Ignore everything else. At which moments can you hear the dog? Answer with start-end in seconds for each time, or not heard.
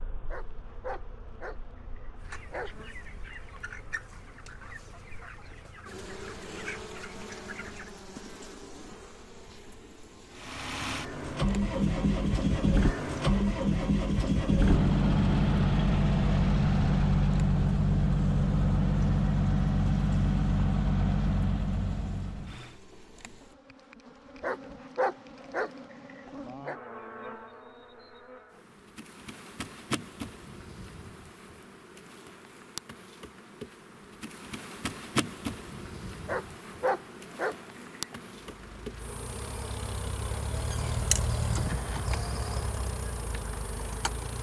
0.3-2.8, 24.4-26.8, 36.2-38.4.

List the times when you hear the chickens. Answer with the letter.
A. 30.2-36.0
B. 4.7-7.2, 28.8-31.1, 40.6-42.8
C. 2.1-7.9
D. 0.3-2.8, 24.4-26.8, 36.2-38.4
C.